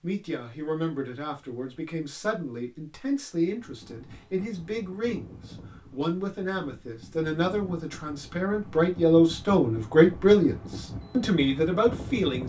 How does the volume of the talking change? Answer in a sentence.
The loudness of the talking goes up.